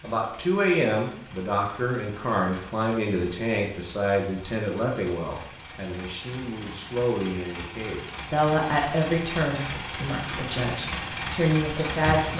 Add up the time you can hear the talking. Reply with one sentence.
You can hear the talking for 12 seconds altogether.